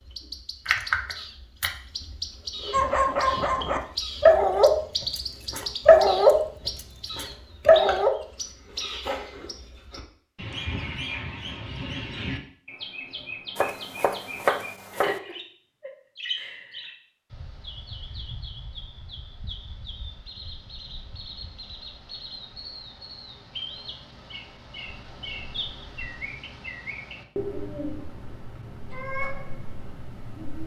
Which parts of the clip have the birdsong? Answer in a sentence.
You can hear the birdsong from 0.0 to 30.6 s.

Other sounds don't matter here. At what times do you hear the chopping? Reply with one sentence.
You can hear the chopping from 13.6 to 15.2 s.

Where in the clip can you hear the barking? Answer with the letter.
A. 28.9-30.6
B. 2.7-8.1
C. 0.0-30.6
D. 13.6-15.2
B.